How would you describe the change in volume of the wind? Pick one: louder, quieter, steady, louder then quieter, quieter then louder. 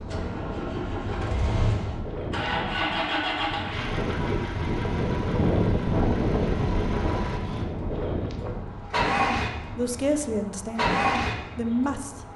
louder then quieter.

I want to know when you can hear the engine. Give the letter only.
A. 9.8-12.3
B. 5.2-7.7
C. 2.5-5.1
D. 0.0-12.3
D.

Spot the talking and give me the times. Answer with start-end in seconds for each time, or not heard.
9.8-12.3.